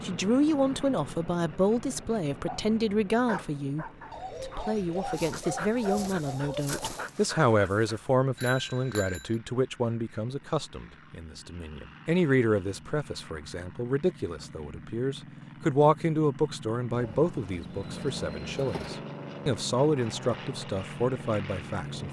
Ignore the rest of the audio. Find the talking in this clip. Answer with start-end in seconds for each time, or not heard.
0.0-22.0.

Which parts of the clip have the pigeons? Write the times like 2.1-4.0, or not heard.
4.1-7.0, 16.9-19.0.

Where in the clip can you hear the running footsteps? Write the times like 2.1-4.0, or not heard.
not heard.